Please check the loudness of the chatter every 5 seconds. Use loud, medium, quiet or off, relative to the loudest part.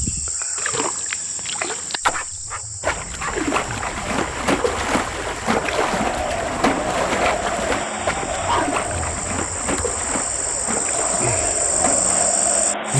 off, loud, loud.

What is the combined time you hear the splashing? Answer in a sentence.
You can hear the splashing for 12 seconds altogether.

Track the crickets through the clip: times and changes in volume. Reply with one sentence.
You can hear the crickets from 0.0 to 12.9 s, getting quieter then louder.